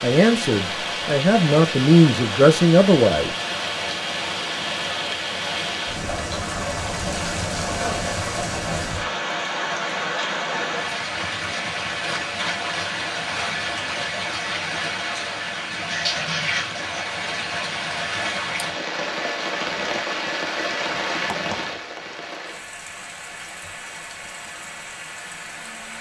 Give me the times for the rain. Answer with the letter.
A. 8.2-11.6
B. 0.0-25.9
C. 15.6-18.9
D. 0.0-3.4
B.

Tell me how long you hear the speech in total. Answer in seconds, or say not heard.
3 s.